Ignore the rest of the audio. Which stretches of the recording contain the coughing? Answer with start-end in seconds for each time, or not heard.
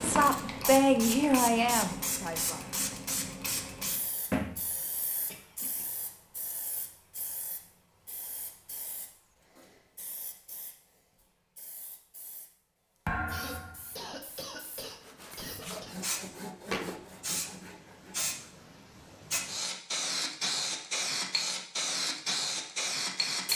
4.7-5.8, 13.2-15.9.